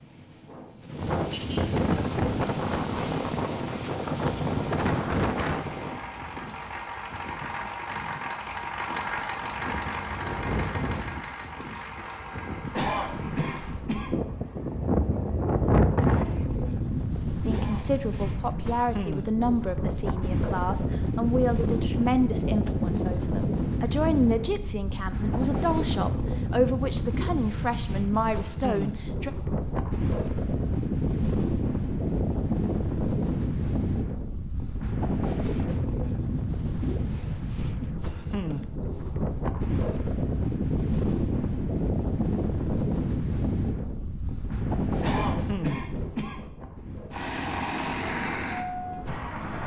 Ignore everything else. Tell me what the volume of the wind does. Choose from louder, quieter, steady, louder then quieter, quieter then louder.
steady.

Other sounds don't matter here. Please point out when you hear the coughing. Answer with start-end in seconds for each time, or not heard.
12.7-14.2, 17.4-18.9, 45.0-46.5.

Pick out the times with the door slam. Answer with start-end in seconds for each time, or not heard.
not heard.